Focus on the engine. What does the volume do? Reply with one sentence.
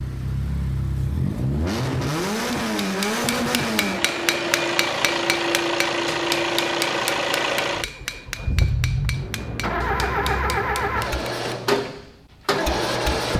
The loudness of the engine stays about the same.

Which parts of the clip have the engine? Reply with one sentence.
The engine can be heard from 0.0 to 13.3 s.